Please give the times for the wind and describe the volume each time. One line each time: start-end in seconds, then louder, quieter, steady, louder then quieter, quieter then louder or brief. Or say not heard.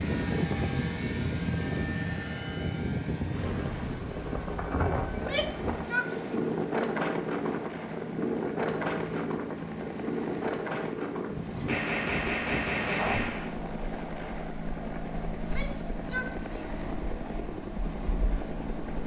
0.0-19.0 quieter.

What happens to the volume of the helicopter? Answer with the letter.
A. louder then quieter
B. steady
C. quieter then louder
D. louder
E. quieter
B.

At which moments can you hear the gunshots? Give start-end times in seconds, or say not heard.
11.7-13.5.